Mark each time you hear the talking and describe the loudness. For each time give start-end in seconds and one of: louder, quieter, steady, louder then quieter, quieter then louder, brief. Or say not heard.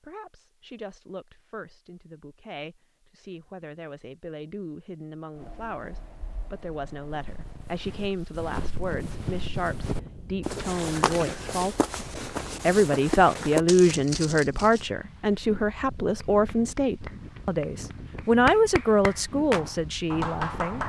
0.0-20.8 louder.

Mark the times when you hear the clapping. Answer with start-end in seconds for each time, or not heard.
16.2-20.8.